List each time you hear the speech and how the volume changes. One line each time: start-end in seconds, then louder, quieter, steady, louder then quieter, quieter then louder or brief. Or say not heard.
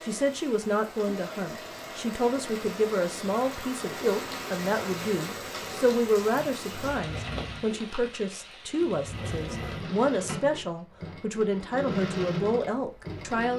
0.0-13.5 steady.